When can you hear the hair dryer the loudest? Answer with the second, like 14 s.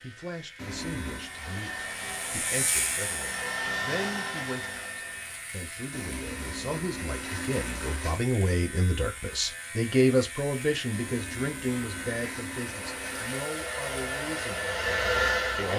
15 s.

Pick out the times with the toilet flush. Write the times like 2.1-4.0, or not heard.
0.6-1.3, 5.9-8.2, 10.9-13.5.